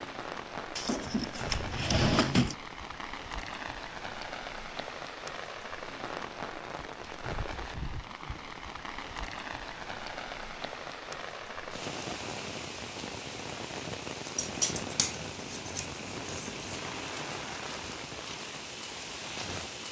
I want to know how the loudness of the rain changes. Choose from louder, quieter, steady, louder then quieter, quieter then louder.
steady.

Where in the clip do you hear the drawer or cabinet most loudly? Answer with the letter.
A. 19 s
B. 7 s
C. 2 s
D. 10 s
C.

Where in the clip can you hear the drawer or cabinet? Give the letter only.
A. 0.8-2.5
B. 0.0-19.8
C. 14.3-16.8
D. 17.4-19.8
A.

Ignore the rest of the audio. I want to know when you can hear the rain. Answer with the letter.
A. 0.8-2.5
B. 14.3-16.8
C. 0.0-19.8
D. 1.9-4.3
C.